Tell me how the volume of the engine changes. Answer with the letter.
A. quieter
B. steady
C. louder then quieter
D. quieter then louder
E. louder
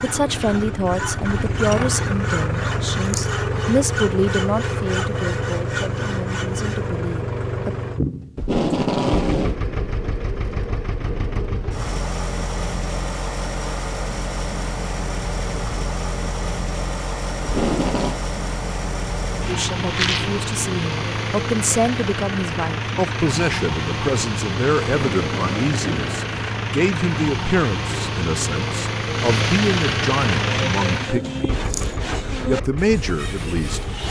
B.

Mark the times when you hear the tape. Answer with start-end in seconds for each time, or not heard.
8.3-9.6, 17.4-18.2, 24.8-26.4.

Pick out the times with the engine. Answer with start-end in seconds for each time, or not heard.
0.0-34.0.